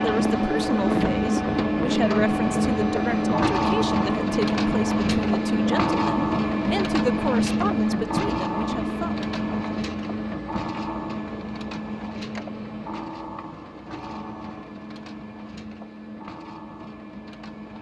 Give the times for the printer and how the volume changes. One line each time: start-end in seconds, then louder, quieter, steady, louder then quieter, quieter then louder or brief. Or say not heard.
0.0-17.7 quieter.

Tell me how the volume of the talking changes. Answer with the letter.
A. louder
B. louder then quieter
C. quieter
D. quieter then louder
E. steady
E.